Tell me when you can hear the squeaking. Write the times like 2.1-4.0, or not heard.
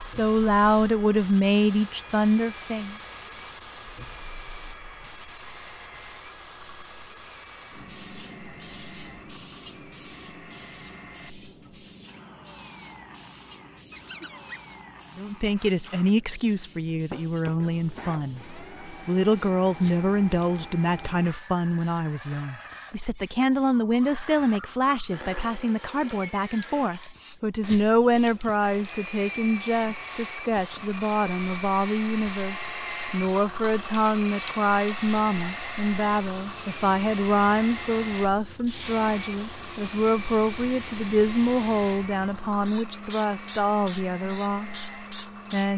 13.9-14.6.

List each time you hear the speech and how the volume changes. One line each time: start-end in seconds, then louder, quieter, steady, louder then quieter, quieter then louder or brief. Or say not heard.
0.0-3.0 brief
15.2-45.7 steady.